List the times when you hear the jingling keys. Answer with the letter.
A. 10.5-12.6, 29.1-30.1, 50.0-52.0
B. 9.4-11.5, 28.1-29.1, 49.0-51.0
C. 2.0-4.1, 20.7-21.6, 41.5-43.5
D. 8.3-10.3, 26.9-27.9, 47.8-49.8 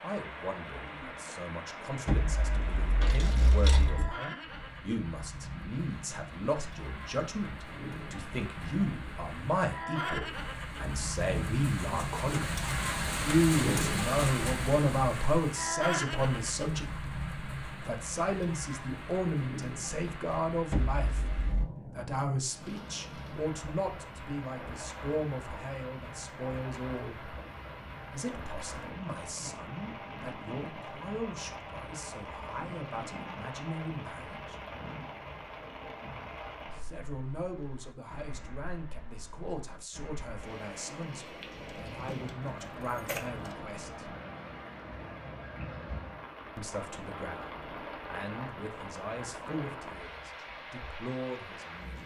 C.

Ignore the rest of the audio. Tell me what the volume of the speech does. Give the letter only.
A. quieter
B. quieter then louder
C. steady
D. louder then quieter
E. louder
D.